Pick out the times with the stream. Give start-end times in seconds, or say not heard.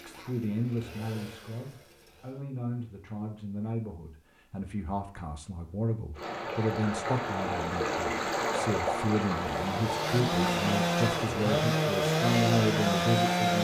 6.2-13.5.